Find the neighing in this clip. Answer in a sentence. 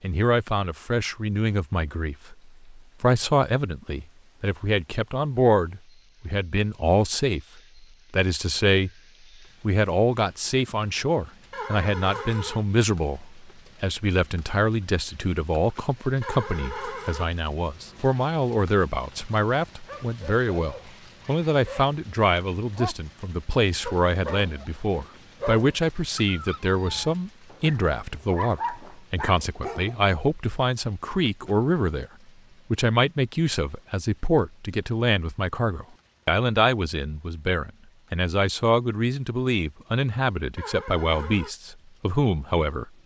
You can hear the neighing from 11.5 to 12.7 s, from 16.2 to 17.3 s and from 40.5 to 41.5 s.